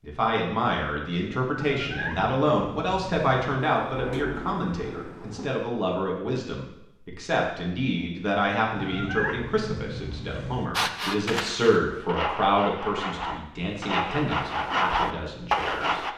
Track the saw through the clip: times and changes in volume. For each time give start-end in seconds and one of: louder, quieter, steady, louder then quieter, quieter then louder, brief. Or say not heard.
10.8-16.1 louder.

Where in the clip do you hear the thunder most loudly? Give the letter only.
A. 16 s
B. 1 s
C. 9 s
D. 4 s
D.